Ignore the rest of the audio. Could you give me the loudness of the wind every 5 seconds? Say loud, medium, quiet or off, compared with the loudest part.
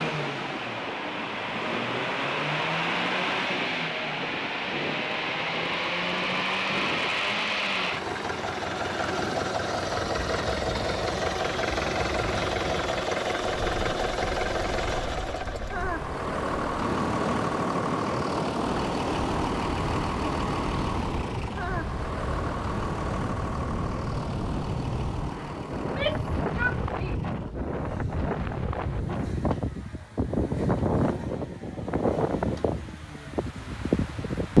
quiet, quiet, quiet, medium, medium, medium, loud.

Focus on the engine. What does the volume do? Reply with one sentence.
The volume of the engine goes down.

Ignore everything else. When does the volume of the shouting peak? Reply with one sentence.
The volume of the shouting peaks at 26 seconds.